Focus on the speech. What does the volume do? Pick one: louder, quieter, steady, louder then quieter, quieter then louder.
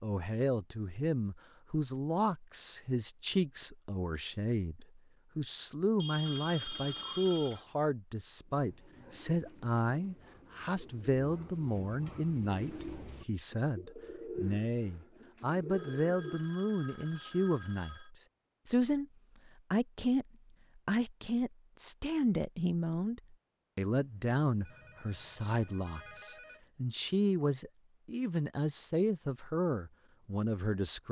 steady.